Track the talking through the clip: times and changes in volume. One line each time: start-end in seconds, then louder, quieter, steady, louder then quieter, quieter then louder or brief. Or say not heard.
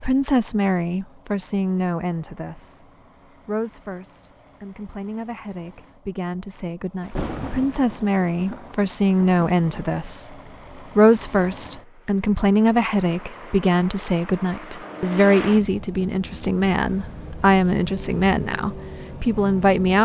0.0-2.9 brief
3.5-10.3 louder
10.9-20.0 steady.